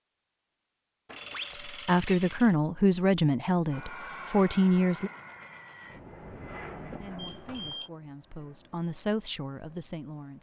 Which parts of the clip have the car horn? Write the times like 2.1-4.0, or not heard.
not heard.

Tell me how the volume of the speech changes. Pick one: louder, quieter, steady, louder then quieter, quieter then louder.
quieter.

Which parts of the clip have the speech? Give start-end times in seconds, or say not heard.
1.6-5.1, 7.0-10.3.